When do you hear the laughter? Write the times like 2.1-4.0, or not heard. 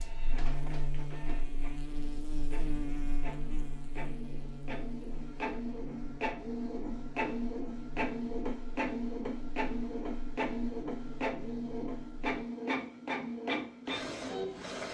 not heard.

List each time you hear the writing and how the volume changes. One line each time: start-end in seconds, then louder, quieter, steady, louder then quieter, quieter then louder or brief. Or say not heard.
not heard.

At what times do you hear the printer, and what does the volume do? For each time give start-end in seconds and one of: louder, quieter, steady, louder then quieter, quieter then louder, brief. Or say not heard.
0.0-14.8 louder.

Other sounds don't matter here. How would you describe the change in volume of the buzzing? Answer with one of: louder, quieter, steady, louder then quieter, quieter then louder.
quieter.